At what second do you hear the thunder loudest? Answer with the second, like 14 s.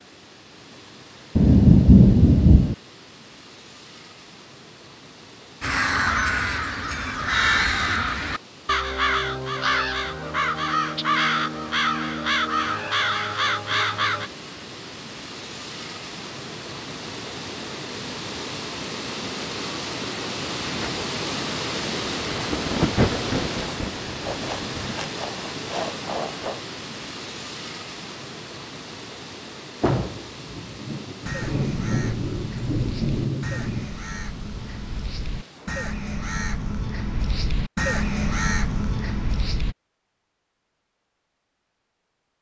2 s.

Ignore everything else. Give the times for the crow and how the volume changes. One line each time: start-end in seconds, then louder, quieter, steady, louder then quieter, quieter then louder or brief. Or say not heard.
5.6-14.3 steady
31.2-39.8 louder.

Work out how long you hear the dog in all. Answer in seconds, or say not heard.
not heard.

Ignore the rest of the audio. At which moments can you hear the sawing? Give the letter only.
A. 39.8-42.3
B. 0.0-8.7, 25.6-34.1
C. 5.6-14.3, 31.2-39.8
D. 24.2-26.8
D.